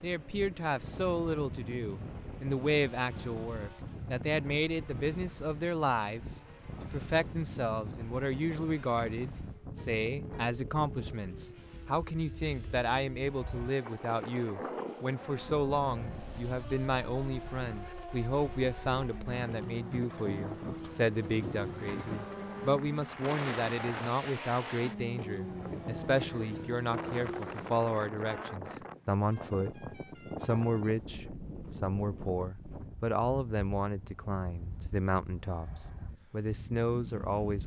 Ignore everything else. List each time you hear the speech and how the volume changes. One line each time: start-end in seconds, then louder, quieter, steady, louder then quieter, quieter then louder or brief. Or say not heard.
0.0-37.6 steady.